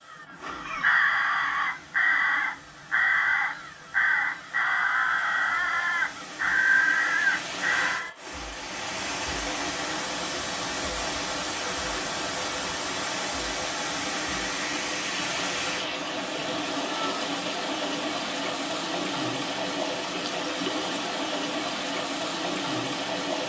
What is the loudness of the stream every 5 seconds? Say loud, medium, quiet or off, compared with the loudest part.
quiet, medium, loud, loud, loud.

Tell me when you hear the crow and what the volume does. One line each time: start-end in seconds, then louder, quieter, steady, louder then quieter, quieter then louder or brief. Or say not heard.
0.1-8.2 steady.